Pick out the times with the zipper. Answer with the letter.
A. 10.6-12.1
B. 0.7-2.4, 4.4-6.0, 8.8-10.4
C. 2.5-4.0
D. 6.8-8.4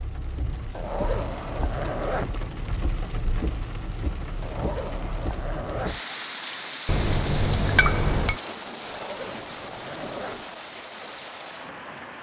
B.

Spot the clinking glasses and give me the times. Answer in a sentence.
You can hear the clinking glasses from 6.8 to 8.4 s.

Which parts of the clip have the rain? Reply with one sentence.
The rain can be heard from 0.0 to 12.1 s.